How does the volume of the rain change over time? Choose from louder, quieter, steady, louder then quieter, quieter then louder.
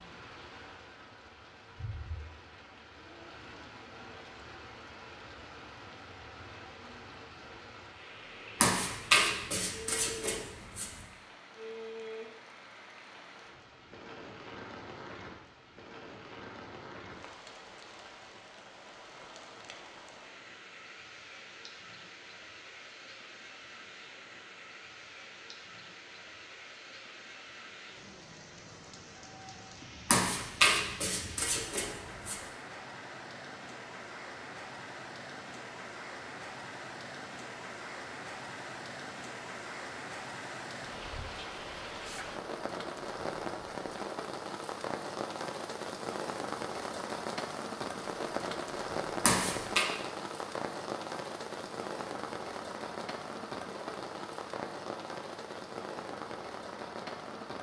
louder.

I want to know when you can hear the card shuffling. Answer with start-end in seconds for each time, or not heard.
8.6-10.9, 30.1-32.4, 49.2-49.9.